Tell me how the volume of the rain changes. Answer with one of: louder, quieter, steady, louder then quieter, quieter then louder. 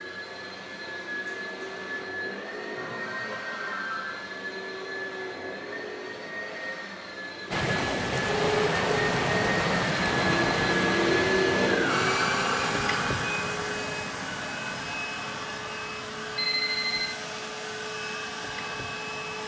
quieter.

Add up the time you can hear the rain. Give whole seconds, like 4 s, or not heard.
12 s.